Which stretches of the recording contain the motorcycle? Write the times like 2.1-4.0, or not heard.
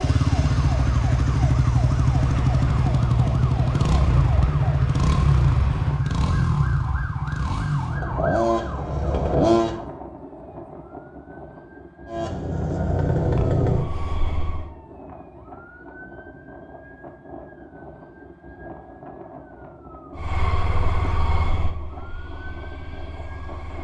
0.0-9.8, 12.1-14.7, 20.1-23.7.